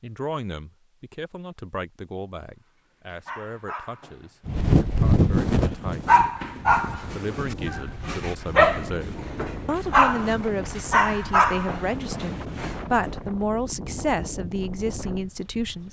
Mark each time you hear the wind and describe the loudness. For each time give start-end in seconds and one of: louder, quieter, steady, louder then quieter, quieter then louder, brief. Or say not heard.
4.5-15.8 quieter.